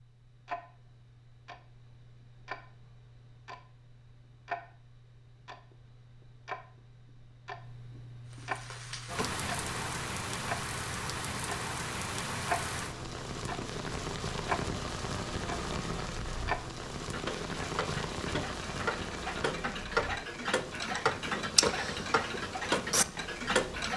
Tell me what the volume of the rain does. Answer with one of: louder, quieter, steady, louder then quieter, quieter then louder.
quieter.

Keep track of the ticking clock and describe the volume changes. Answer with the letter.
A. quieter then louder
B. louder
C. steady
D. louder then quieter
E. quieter
B.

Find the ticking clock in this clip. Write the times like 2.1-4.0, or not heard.
0.0-23.9.